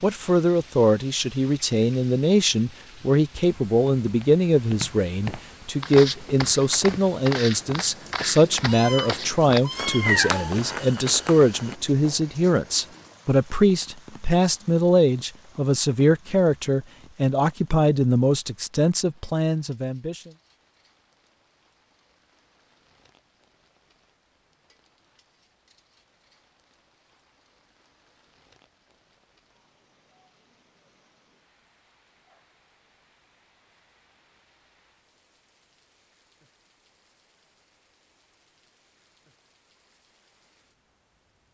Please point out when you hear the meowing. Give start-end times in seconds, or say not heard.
8.2-10.4.